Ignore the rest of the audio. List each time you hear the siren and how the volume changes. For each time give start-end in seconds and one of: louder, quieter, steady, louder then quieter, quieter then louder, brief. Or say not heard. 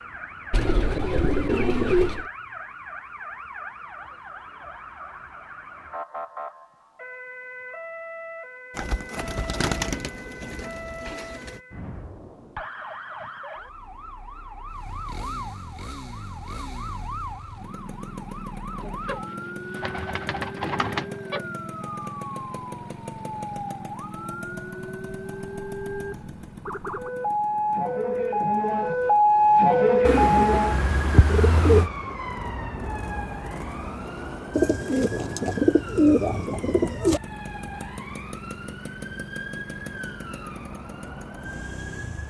0.0-42.2 louder then quieter.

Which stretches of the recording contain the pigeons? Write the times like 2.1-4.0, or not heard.
0.5-2.3, 8.8-11.6, 18.8-21.4, 30.1-31.9, 34.5-37.2.